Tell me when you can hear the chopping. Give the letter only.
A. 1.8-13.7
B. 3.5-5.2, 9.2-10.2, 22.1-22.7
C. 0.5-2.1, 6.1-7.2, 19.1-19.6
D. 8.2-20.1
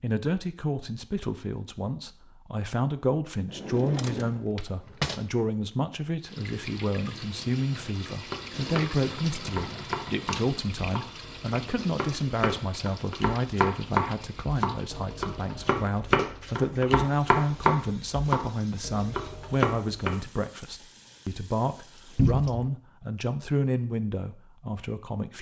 D.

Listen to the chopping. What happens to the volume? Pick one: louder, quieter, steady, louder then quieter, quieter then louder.
louder.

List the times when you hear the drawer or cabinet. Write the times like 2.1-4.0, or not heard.
3.5-5.2, 9.2-10.2, 22.1-22.7.